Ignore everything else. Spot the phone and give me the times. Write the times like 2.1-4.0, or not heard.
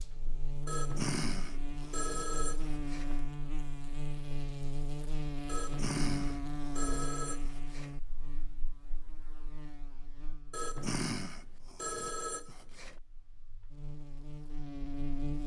0.7-3.2, 5.5-7.9, 10.5-12.9.